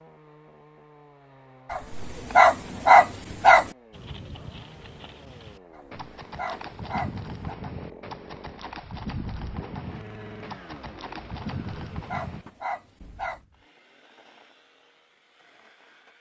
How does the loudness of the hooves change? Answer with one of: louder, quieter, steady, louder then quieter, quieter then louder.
louder.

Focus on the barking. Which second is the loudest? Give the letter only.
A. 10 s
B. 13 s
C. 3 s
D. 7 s
C.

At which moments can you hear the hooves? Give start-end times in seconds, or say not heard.
3.9-12.5.